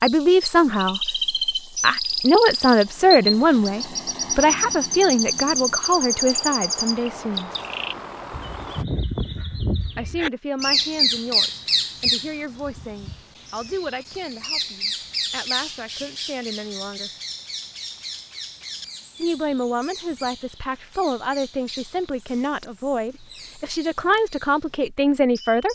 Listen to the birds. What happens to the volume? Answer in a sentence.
The loudness of the birds goes down.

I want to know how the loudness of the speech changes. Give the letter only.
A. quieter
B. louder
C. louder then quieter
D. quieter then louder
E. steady
D.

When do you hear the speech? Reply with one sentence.
You can hear the speech from 0.0 to 7.5 s, from 9.9 to 17.1 s and from 19.2 to 25.7 s.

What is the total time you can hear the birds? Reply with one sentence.
You can hear the birds for 26 seconds altogether.